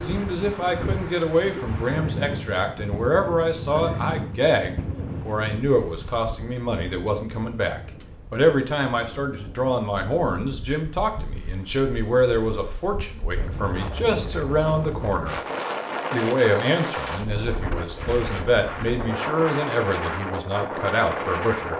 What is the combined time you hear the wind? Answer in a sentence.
You can hear the wind for 22 seconds altogether.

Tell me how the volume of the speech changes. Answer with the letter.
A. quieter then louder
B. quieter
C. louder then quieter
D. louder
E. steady
E.